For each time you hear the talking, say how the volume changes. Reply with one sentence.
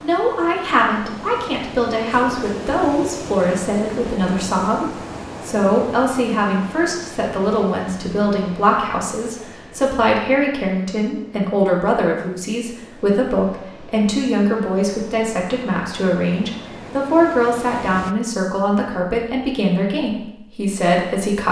The talking can be heard from 0.0 to 21.4 s, at a steady volume.